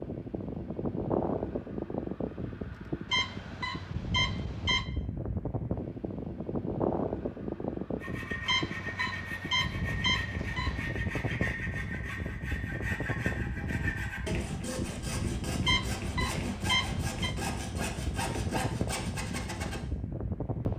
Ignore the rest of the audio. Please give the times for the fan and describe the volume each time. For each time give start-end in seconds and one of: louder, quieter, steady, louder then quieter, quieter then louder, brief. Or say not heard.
0.0-20.7 steady.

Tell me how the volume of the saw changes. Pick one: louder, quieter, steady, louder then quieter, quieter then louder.
steady.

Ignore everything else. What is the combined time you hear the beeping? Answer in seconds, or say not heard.
6 s.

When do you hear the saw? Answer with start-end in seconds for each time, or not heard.
8.0-19.8.